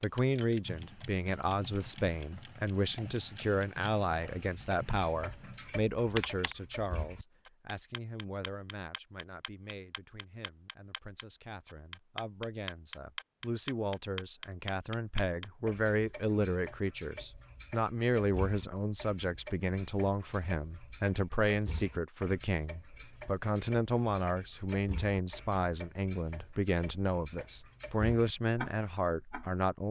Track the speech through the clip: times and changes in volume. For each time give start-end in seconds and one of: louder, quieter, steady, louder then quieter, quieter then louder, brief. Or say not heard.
0.0-29.8 quieter then louder.